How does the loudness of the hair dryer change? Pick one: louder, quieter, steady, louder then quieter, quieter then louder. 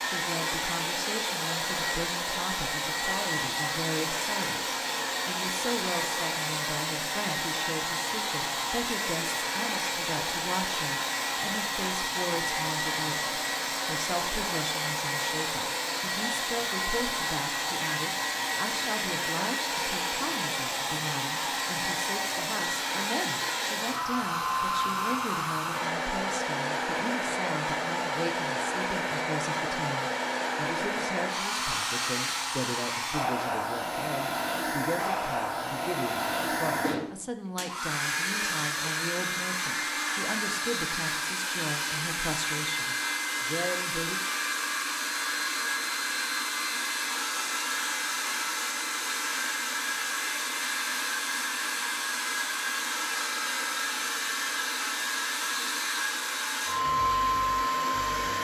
steady.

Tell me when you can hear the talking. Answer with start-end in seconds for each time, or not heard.
0.0-44.2.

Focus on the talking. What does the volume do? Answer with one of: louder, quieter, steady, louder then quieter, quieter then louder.
steady.